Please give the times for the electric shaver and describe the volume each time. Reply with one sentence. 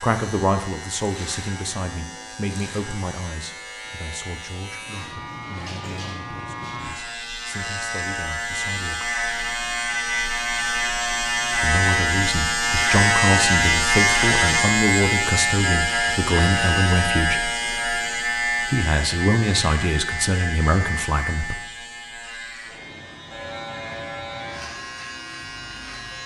The electric shaver can be heard from 0.0 to 26.2 s, getting louder then quieter.